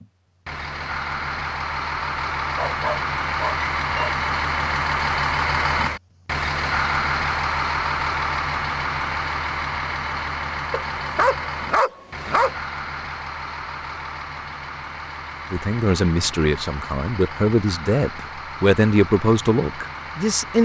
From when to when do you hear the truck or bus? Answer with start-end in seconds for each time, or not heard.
0.0-20.6.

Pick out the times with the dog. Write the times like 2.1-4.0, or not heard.
2.5-4.2, 10.7-12.6.